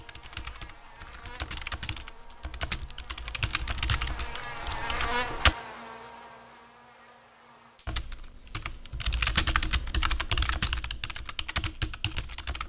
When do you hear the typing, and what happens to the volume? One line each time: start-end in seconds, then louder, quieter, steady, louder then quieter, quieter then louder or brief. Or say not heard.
0.0-5.5 louder then quieter
7.8-12.6 louder then quieter.